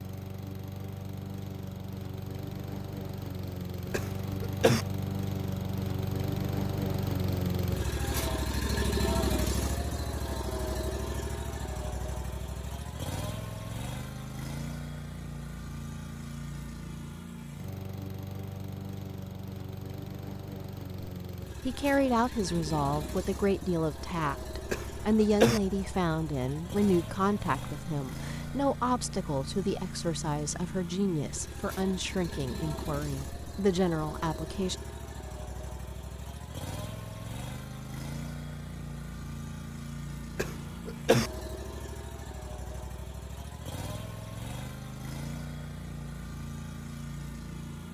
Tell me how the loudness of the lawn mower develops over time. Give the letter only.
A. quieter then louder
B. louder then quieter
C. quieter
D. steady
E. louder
C.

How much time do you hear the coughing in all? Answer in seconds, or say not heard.
3 s.